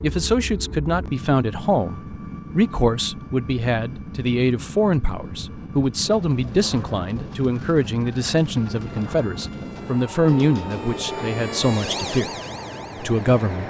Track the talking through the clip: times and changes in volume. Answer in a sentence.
You can hear the talking from 0.0 to 12.3 s, at a steady volume; and briefly from 13.0 to 13.6 s.